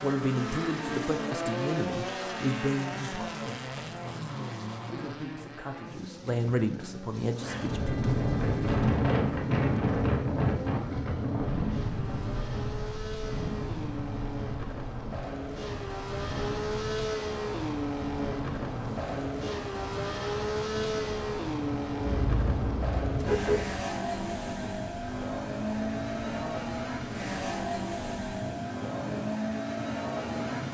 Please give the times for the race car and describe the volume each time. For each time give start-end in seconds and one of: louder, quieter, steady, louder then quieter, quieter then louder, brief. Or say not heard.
0.0-30.6 quieter then louder.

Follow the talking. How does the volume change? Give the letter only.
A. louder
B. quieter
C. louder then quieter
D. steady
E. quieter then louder
E.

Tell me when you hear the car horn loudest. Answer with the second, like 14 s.
23 s.